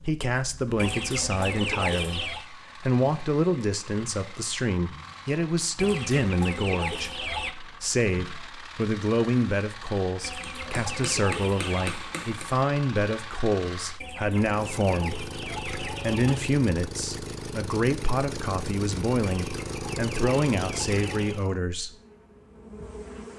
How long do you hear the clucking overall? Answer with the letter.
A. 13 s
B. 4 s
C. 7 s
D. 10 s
D.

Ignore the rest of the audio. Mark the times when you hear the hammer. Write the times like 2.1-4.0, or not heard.
10.4-12.5.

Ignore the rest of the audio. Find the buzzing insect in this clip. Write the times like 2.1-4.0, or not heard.
21.9-23.3.